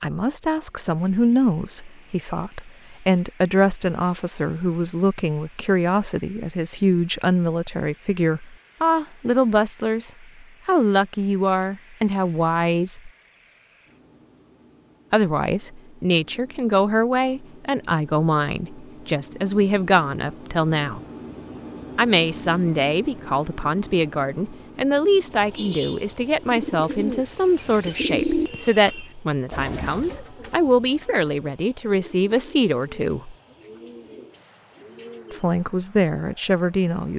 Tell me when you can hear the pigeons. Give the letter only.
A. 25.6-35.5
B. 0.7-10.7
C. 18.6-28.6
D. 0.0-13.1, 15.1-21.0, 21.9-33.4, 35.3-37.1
A.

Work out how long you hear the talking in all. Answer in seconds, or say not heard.
32 s.